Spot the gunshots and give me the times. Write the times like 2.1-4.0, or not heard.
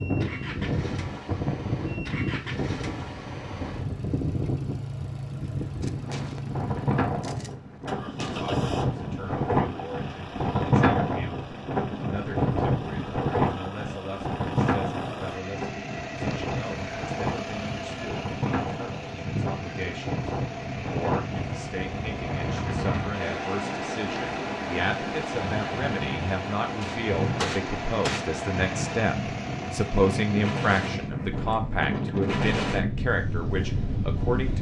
5.8-8.6, 26.8-28.3.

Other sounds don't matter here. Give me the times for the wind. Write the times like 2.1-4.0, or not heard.
0.0-34.5.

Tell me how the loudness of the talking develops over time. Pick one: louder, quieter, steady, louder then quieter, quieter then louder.
louder.